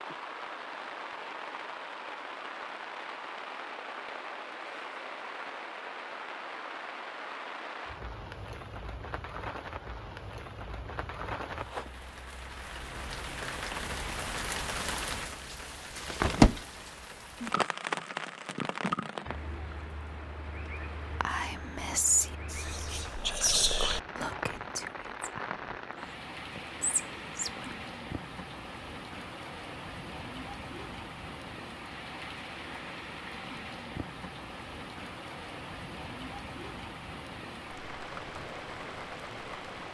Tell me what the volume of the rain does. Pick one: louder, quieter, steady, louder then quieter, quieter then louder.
louder then quieter.